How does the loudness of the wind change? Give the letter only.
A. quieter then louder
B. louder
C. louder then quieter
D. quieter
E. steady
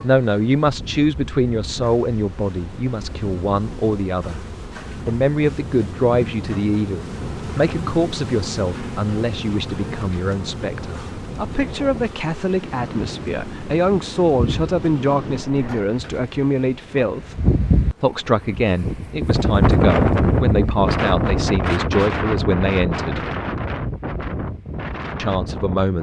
B.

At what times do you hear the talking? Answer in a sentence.
The talking can be heard from 0.0 to 4.4 s, from 5.0 to 17.4 s, from 18.0 to 23.3 s and from 25.1 to 25.9 s.